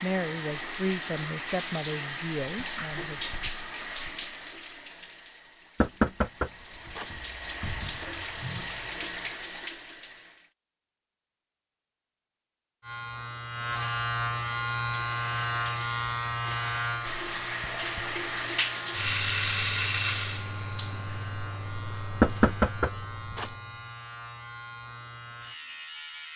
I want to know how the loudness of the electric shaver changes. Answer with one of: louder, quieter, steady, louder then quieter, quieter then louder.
quieter.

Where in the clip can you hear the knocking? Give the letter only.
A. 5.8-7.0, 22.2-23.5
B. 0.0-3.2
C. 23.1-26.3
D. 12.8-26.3
A.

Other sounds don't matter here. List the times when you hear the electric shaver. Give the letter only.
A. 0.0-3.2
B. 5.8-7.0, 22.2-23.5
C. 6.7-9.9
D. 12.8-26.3
D.